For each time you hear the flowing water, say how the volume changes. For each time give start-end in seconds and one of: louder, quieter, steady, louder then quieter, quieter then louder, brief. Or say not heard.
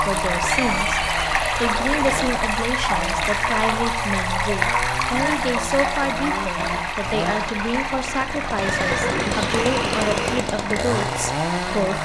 0.0-12.0 quieter.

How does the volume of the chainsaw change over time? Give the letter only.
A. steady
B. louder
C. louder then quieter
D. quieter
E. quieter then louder
B.